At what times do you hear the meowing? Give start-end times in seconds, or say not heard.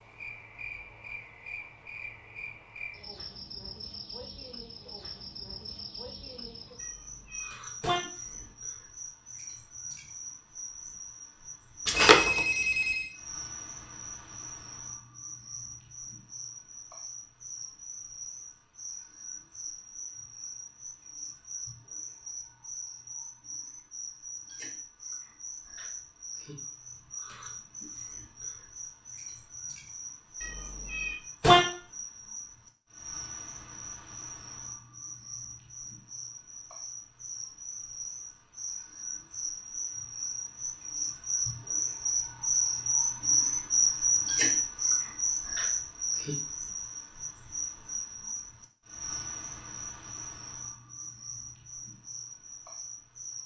6.8-8.0, 30.4-31.6.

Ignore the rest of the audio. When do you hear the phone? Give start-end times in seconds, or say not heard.
11.8-13.1.